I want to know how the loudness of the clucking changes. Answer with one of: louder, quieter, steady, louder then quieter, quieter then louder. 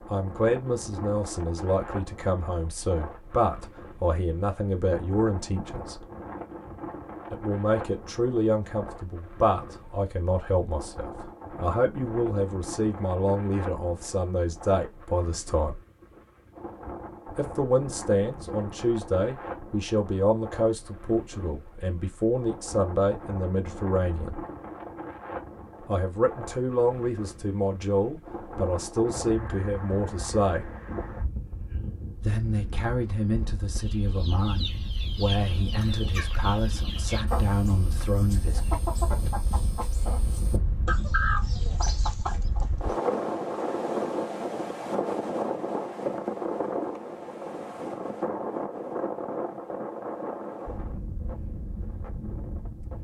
louder.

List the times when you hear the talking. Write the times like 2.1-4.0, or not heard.
0.1-6.0, 7.3-15.8, 17.4-24.4, 25.9-30.7, 32.1-38.6.